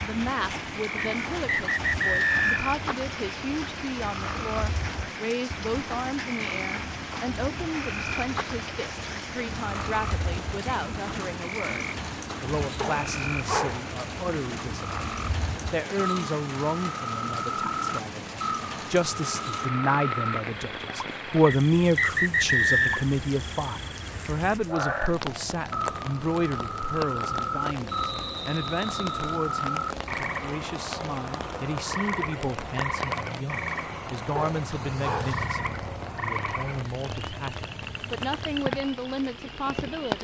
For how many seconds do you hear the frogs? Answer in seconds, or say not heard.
40 s.